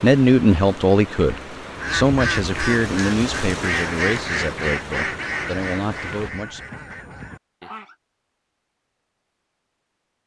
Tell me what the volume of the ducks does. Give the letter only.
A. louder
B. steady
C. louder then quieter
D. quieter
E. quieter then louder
D.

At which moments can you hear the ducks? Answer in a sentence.
You can hear the ducks from 1.7 to 8.0 s.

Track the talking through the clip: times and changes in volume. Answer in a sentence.
The talking can be heard from 0.0 to 6.6 s, getting quieter.